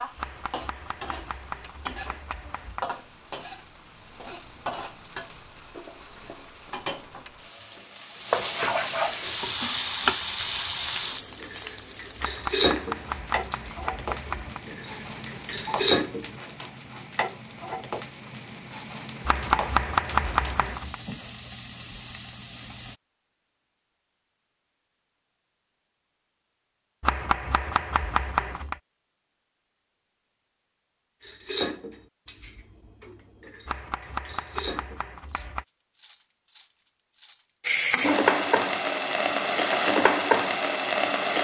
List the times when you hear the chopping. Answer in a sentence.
You can hear the chopping from 0.1 to 2.9 s, from 12.2 to 14.6 s, from 19.2 to 20.9 s, from 27.0 to 28.8 s and from 33.6 to 35.6 s.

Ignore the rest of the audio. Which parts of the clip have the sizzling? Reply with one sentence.
You can hear the sizzling from 0.0 to 22.9 s and from 37.6 to 41.3 s.